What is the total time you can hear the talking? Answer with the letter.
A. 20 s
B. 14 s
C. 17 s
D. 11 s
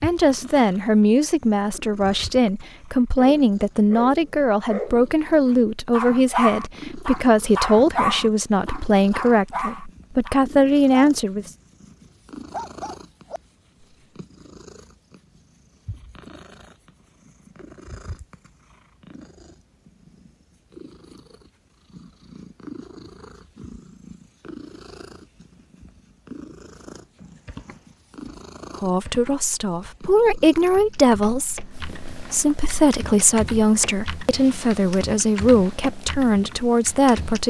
A.